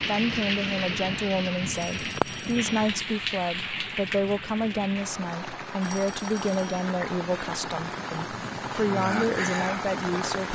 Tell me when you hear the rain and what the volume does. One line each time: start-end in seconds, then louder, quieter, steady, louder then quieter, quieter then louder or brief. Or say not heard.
0.0-10.5 quieter then louder.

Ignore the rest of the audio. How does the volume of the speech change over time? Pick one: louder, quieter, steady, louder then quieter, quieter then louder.
steady.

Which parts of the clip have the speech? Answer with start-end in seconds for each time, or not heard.
0.1-10.5.